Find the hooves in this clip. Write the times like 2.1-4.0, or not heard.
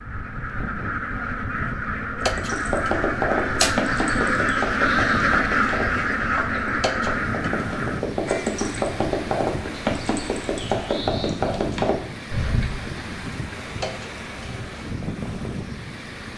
2.2-12.8.